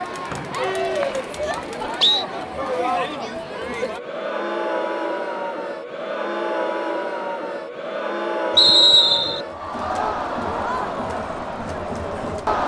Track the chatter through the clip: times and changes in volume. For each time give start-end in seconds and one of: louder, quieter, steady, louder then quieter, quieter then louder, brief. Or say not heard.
0.0-12.6 steady.